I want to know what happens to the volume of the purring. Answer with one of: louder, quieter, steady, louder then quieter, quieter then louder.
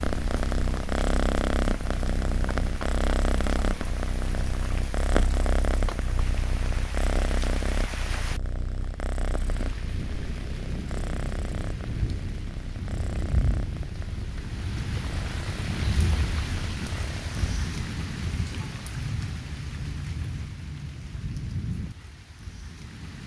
quieter.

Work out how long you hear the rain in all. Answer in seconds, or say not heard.
23 s.